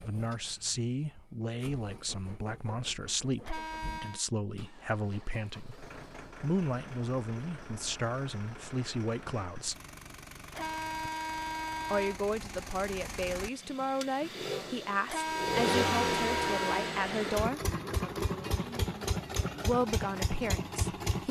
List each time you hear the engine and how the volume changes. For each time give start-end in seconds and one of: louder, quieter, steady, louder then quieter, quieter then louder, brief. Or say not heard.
0.0-21.2 louder.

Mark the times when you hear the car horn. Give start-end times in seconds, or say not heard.
3.4-4.2, 10.5-12.2, 15.1-16.9.